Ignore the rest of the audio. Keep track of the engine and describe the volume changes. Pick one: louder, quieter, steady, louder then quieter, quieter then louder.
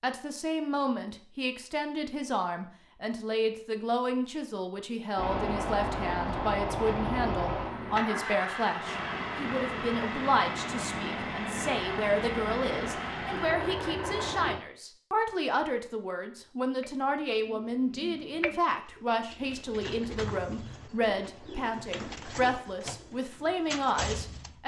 steady.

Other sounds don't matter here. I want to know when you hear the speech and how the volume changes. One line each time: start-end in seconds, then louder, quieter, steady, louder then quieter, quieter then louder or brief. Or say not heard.
0.0-24.6 steady.